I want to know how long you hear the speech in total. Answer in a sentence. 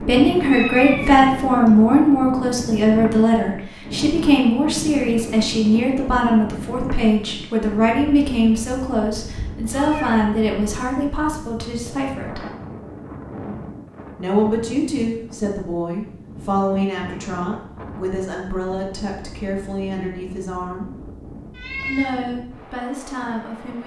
The speech can be heard for 21 seconds in total.